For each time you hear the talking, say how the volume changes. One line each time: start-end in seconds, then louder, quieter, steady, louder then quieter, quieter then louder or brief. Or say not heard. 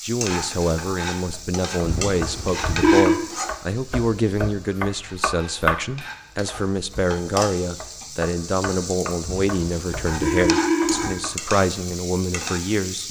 0.0-13.0 steady.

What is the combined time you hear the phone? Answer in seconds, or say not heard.
3 s.